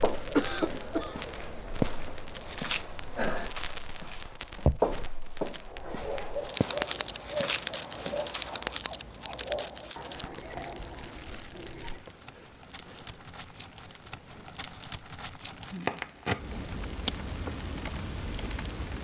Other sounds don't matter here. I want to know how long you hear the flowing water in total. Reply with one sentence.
You can't hear the flowing water here.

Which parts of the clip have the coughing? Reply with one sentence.
The coughing can be heard from 0.3 to 1.2 s.